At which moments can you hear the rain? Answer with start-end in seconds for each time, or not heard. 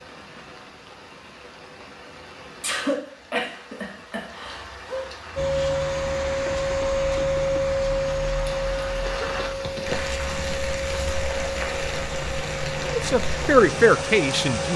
0.0-14.7.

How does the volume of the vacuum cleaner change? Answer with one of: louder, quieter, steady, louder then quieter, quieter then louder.
quieter.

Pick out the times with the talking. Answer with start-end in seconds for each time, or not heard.
12.8-14.7.